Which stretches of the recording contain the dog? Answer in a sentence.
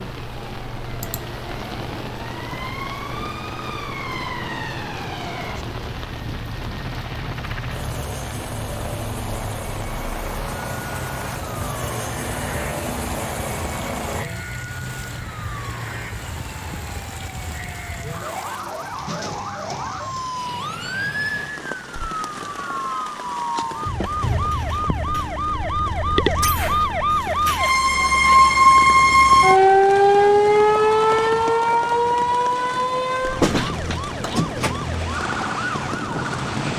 The dog can't be heard in this clip.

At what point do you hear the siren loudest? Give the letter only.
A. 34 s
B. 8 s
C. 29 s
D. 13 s
C.